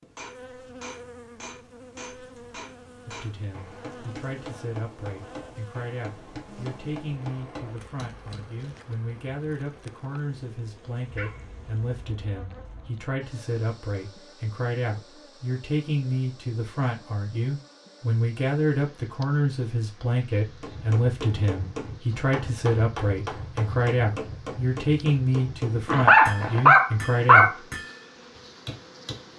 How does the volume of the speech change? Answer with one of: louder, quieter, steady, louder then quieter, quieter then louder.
louder.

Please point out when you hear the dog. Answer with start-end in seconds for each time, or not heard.
11.1-13.1, 25.9-27.6.